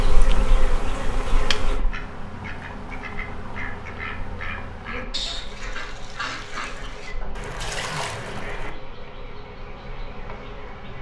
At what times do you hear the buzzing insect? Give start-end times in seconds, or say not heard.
0.0-10.9.